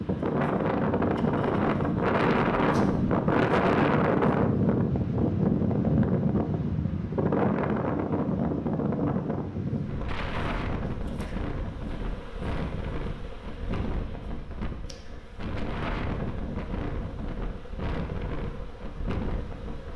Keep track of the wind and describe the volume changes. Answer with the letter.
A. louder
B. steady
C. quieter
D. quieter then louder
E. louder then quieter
C.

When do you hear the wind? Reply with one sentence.
You can hear the wind from 0.0 to 19.9 s.